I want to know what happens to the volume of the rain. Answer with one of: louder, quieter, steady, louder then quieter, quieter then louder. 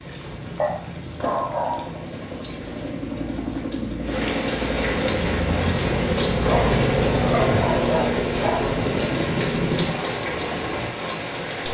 louder.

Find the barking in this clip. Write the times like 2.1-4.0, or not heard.
0.6-1.9, 6.4-8.8.